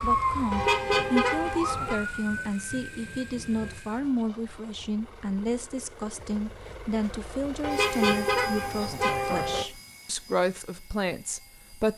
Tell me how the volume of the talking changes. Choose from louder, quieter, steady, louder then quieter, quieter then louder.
steady.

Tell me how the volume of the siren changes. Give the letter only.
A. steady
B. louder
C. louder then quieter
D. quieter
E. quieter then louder
D.